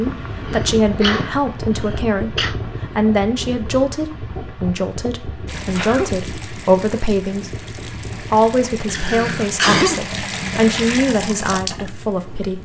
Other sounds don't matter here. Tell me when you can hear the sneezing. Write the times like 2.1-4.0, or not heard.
0.5-2.5, 5.5-6.1, 8.8-10.0.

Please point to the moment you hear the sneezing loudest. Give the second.
10 s.